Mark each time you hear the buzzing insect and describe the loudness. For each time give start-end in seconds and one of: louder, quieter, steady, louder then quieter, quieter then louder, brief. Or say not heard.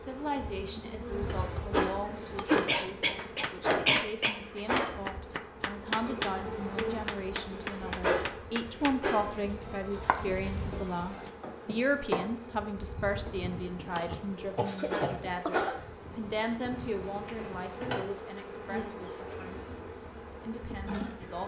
0.0-21.4 quieter.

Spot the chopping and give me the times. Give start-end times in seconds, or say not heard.
2.1-11.3.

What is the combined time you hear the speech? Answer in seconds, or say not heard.
21 s.